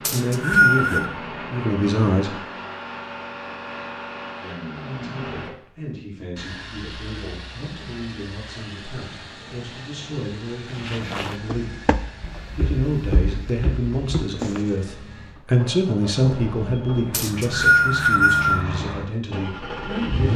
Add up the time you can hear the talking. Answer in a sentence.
The talking can be heard for 18 seconds in total.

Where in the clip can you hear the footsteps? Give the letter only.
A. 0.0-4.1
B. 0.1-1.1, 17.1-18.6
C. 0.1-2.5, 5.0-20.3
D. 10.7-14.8
D.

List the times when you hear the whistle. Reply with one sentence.
The whistle can be heard from 0.1 to 1.1 s and from 17.1 to 18.6 s.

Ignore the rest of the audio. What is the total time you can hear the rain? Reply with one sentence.
The rain can't be heard in this clip.